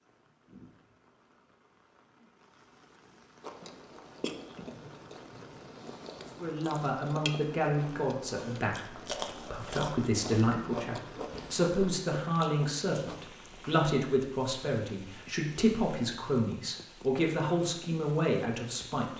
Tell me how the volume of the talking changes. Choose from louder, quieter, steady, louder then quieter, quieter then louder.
steady.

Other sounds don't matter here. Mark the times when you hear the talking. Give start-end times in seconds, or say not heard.
6.4-19.1.